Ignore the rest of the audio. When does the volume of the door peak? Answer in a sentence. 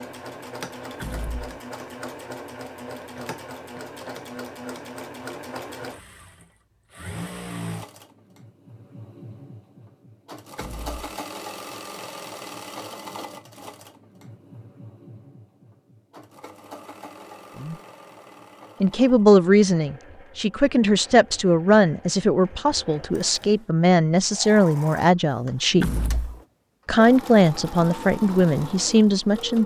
The volume of the door peaks at 26 seconds.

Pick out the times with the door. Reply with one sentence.
You can hear the door from 1.0 to 1.5 s, from 10.6 to 11.1 s and from 25.8 to 26.4 s.